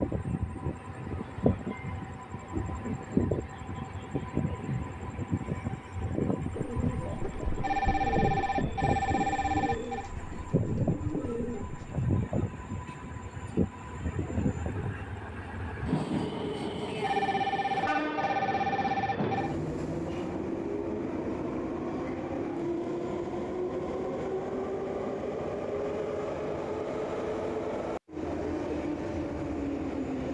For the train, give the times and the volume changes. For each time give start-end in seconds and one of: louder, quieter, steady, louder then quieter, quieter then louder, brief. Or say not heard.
0.0-30.2 steady.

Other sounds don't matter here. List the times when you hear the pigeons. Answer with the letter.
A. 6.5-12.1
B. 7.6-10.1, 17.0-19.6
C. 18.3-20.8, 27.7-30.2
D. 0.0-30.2
A.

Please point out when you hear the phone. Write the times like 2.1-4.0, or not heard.
7.6-10.1, 17.0-19.6.